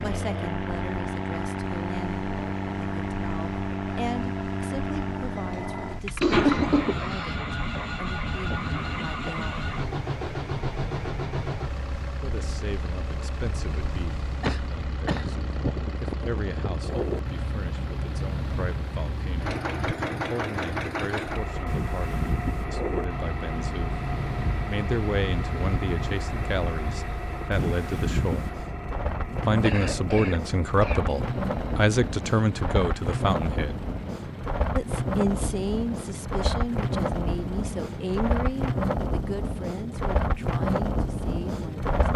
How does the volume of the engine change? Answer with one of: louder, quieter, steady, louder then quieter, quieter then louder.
quieter.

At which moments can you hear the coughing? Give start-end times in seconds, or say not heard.
5.3-7.3, 14.4-15.4, 29.6-31.1.